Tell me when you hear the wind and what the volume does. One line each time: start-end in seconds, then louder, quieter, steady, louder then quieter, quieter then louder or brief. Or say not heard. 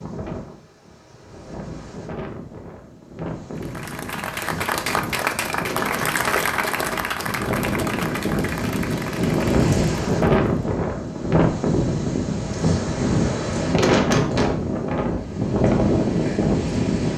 0.0-17.1 louder.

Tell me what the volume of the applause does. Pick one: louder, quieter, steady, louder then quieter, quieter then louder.
quieter.